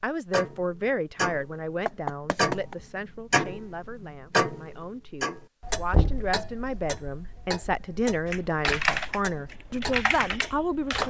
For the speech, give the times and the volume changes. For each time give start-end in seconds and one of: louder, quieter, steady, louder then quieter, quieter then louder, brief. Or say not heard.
0.0-11.0 quieter then louder.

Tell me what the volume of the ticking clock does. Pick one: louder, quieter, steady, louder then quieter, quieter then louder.
quieter.